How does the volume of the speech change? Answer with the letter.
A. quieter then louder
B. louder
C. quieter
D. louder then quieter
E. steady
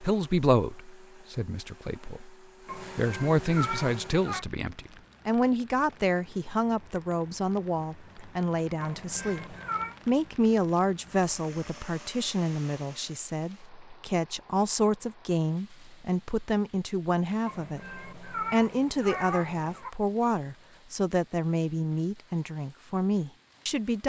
E.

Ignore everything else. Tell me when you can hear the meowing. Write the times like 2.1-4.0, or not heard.
2.6-4.5, 8.8-9.9, 17.4-19.9.